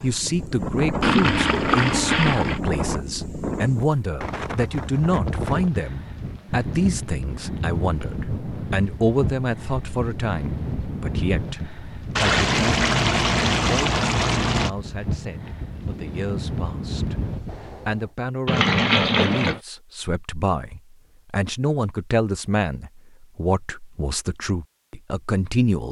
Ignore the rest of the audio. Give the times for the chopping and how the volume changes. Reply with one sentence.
You can't hear the chopping here.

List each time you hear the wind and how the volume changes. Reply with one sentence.
You can hear the wind from 0.0 to 18.1 s, at a steady volume.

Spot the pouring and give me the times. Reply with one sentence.
The pouring can be heard from 1.0 to 2.6 s, from 12.2 to 14.7 s and from 18.4 to 19.6 s.